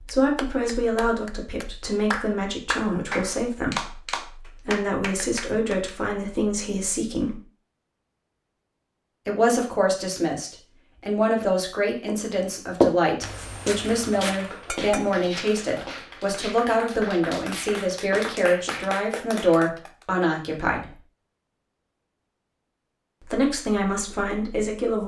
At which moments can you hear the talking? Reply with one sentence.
The talking can be heard from 0.0 to 7.3 s, from 9.2 to 20.9 s and from 23.2 to 25.0 s.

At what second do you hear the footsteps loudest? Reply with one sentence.
The loudest moment of the footsteps is at 13 seconds.